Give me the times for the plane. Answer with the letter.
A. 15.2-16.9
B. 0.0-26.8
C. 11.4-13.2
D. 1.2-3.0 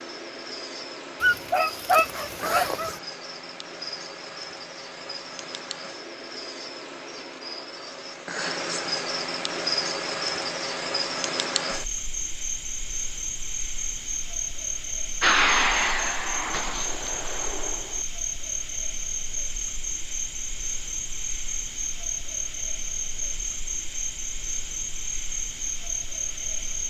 A.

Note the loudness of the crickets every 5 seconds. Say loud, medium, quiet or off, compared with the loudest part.
medium, loud, loud, loud, loud, loud.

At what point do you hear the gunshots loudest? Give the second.
17 s.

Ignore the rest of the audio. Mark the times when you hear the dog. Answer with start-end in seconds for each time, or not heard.
1.2-3.0.